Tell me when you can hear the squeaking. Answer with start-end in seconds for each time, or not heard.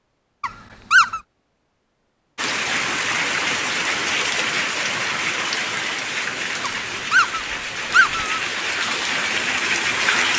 0.4-1.2, 6.6-8.4.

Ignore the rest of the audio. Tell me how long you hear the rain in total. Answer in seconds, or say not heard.
8 s.